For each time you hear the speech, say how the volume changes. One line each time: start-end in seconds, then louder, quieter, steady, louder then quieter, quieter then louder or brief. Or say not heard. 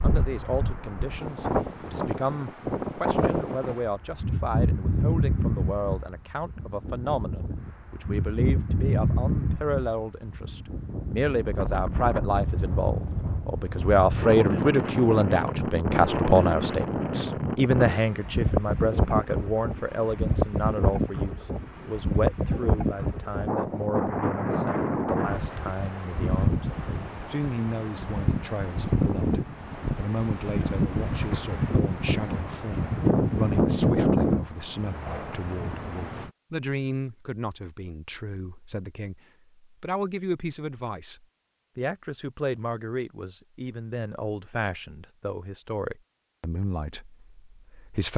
0.0-48.1 louder then quieter.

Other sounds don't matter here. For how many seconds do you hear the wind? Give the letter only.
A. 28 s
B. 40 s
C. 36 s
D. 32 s
C.